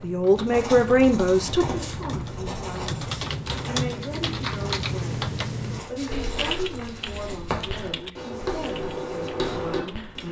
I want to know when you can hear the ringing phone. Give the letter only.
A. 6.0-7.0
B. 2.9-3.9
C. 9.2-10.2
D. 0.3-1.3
A.